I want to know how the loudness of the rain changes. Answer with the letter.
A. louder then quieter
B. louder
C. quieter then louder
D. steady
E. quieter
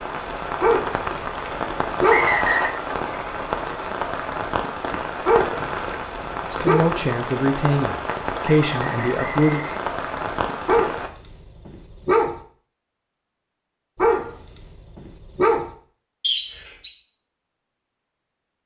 D.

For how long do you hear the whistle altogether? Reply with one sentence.
You can hear the whistle for 3 seconds altogether.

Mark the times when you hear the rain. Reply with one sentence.
The rain can be heard from 0.0 to 11.1 s.